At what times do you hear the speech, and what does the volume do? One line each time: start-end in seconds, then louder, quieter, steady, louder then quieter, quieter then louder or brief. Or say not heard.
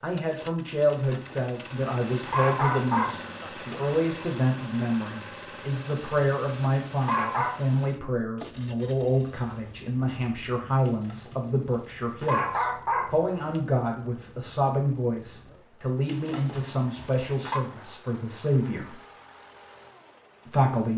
0.0-18.9 steady
20.4-20.9 brief.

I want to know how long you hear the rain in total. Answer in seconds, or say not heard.
not heard.